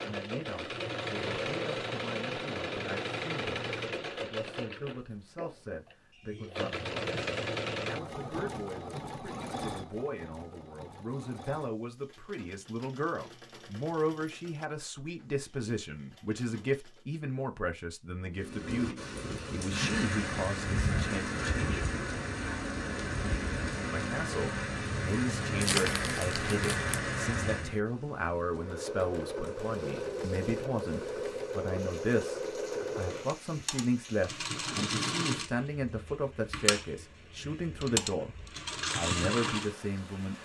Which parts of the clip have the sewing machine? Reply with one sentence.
The sewing machine can be heard from 0.0 to 17.1 s and from 28.4 to 40.4 s.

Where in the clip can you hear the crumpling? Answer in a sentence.
The crumpling can be heard from 25.6 to 26.9 s.